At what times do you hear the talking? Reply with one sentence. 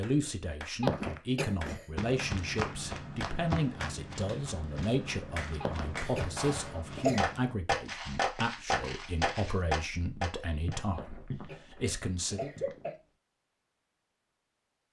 You can hear the talking from 0.0 to 12.5 s.